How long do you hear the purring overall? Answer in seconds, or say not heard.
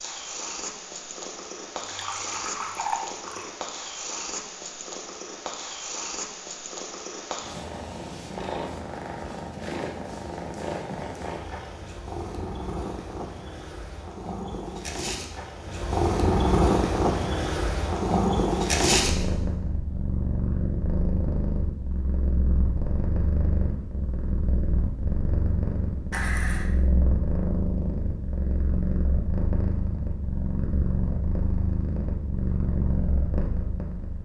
34 s.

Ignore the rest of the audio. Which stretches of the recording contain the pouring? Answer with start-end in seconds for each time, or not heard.
1.8-3.5, 26.1-26.7.